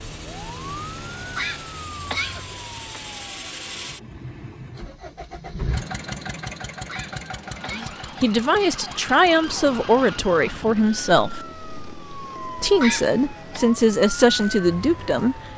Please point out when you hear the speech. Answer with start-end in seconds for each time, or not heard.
7.7-11.4, 12.6-15.4.